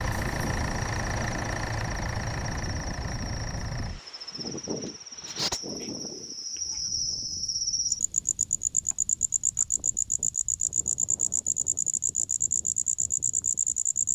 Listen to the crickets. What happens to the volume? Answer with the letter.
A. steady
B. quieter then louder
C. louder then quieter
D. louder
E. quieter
D.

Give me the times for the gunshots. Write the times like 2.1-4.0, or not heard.
not heard.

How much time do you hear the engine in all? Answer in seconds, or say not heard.
4 s.